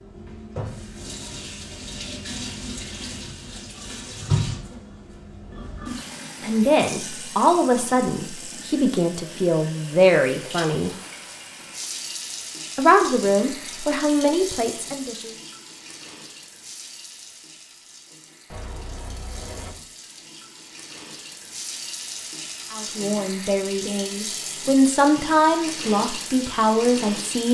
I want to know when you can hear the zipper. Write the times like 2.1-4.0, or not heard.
10.8-11.5, 18.5-19.8.